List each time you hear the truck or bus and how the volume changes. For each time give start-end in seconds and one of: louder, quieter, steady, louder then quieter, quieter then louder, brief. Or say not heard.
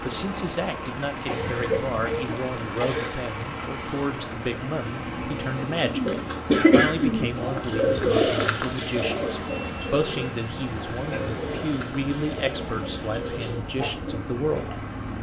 0.0-15.1 steady.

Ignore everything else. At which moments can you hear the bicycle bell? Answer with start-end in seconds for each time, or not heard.
2.3-3.9, 9.4-10.7.